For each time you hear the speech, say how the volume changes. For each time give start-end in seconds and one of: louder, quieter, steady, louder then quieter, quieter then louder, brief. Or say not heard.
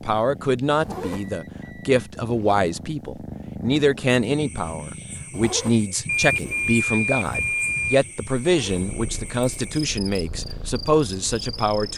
0.0-11.9 steady.